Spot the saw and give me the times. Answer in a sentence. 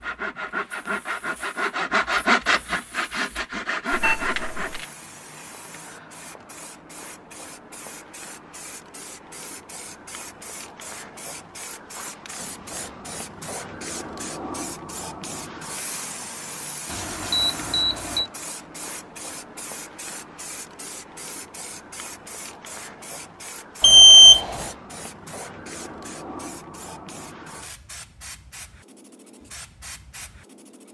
The saw can be heard from 0.0 to 5.0 s.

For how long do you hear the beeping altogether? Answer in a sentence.
The beeping can be heard for 3 seconds in total.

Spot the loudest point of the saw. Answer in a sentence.
The volume of the saw peaks at 2 seconds.